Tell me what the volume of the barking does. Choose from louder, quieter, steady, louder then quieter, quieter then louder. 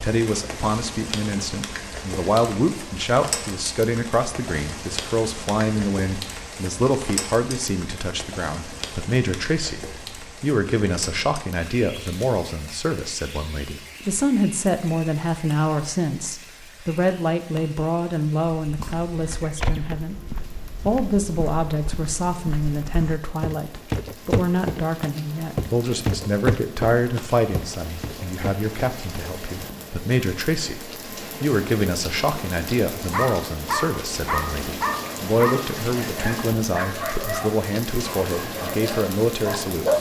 quieter.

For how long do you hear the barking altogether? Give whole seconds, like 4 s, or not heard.
7 s.